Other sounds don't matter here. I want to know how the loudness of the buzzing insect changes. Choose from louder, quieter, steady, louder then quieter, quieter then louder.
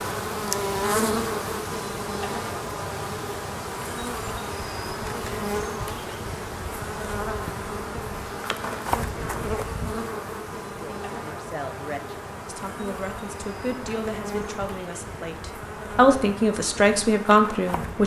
quieter.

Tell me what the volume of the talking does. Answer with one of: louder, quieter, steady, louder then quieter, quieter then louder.
louder.